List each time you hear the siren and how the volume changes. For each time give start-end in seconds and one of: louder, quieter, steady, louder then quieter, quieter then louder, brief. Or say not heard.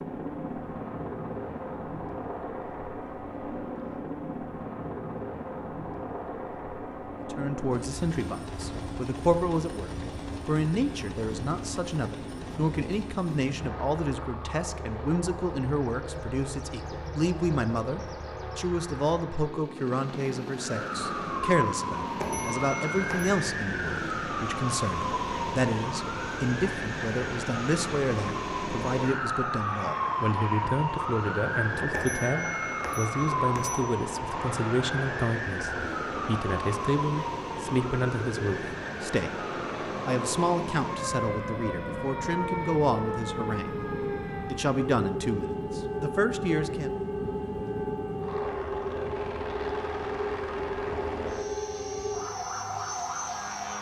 20.6-53.7 steady.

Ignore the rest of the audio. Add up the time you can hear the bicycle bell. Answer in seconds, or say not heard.
3 s.